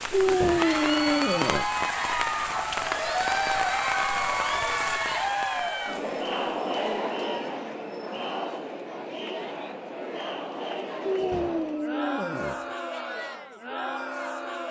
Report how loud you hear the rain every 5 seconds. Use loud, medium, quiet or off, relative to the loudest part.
loud, medium, off.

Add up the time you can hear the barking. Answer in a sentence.
The barking can be heard for 3 seconds in total.